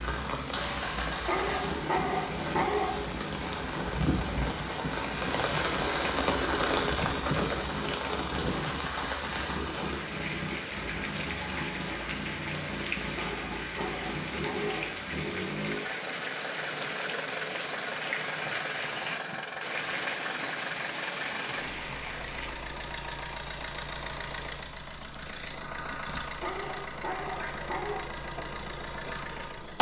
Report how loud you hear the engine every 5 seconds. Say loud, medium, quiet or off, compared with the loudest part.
medium, medium, medium, medium, medium, loud.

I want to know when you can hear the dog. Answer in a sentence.
The dog can be heard from 1.2 to 3.0 s, from 13.2 to 14.8 s and from 26.4 to 28.1 s.